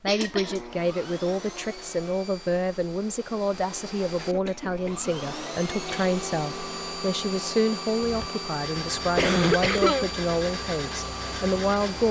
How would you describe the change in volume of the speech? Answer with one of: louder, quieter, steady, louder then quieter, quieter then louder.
steady.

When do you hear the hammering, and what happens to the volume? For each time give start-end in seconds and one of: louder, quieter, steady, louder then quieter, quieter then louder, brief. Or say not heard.
not heard.